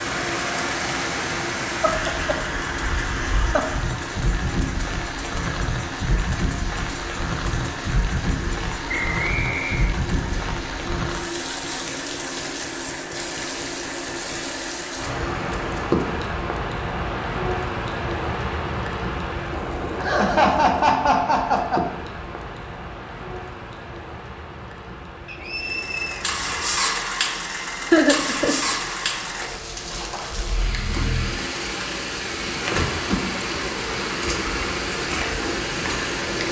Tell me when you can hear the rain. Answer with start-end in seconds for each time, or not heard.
0.0-36.4.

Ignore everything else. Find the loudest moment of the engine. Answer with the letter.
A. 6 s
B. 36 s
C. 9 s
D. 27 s
D.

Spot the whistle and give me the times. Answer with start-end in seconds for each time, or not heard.
8.8-9.9, 25.2-26.2.